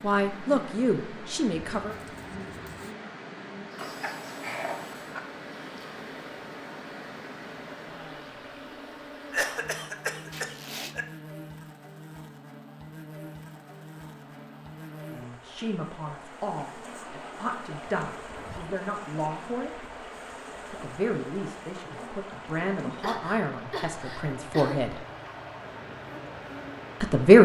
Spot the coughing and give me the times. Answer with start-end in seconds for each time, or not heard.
3.8-5.2, 9.3-11.1, 22.9-24.9.